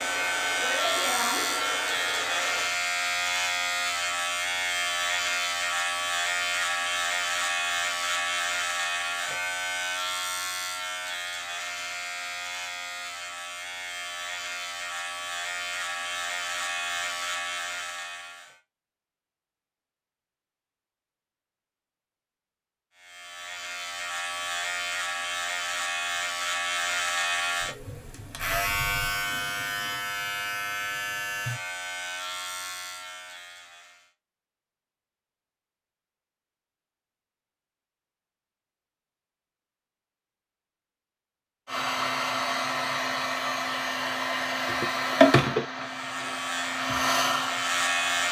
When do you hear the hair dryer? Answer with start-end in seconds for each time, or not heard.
0.0-2.7, 41.6-48.2.